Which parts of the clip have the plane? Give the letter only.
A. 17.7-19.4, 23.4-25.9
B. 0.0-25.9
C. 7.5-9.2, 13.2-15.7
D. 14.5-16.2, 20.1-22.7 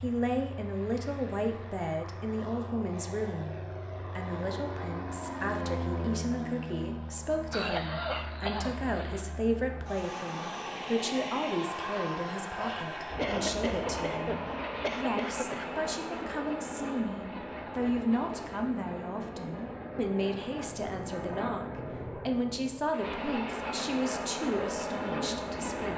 B.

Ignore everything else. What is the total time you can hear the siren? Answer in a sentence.
The siren can't be heard in this clip.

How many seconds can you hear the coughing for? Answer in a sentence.
The coughing can be heard for 4 seconds in total.